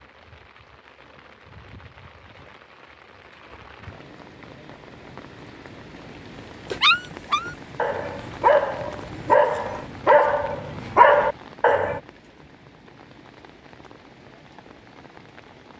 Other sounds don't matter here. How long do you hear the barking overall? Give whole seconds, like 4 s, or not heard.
5 s.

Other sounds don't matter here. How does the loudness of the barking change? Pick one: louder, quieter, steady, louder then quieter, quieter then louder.
louder.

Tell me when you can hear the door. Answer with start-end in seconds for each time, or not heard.
not heard.